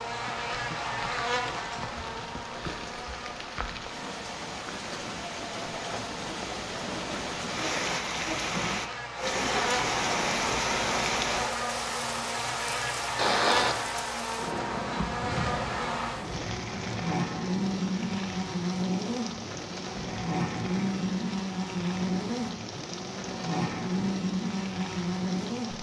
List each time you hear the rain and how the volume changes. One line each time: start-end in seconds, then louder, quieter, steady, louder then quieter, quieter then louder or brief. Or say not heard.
0.1-25.7 louder then quieter.